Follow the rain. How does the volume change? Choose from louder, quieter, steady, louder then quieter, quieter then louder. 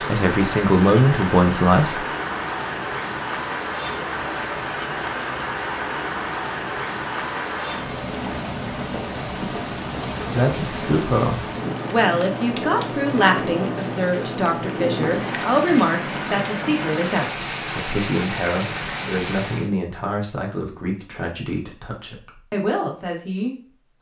steady.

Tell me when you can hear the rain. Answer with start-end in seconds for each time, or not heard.
0.0-19.7.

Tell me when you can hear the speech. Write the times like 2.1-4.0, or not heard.
0.1-2.0, 10.2-23.8.